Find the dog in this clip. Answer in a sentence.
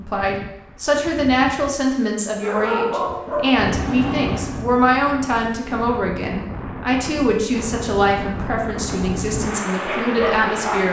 The dog can be heard from 2.4 to 4.7 s and from 8.9 to 10.8 s.